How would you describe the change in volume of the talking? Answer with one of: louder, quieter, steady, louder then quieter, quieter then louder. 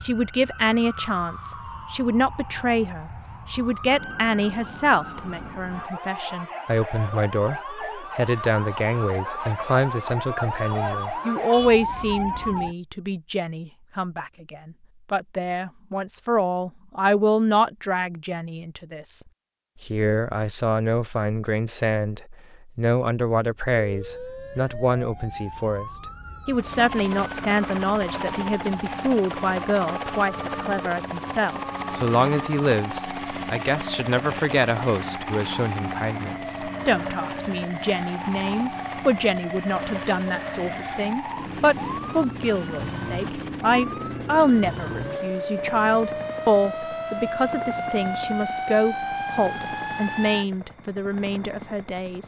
steady.